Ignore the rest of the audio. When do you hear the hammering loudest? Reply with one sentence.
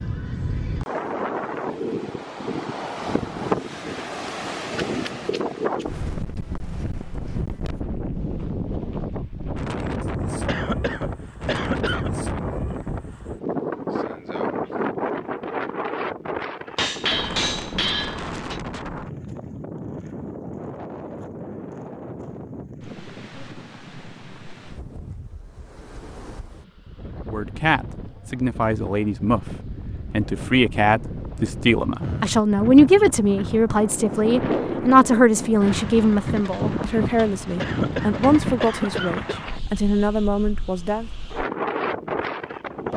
The loudest moment of the hammering is at 17 seconds.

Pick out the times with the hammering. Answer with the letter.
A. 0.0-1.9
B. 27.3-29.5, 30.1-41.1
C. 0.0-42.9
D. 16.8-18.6
D.